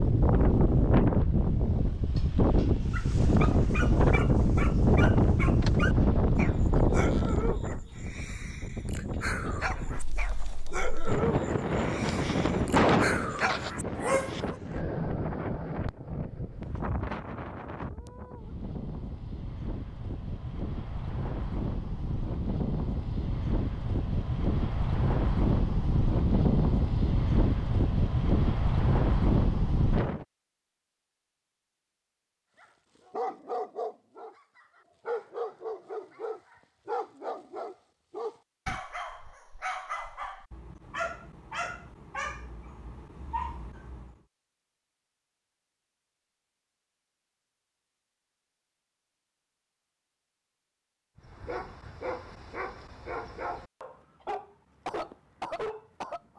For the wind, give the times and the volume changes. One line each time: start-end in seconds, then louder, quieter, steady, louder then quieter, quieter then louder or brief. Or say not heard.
0.0-30.2 quieter then louder.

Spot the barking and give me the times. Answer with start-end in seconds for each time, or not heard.
2.9-14.6, 32.6-44.2, 51.1-56.3.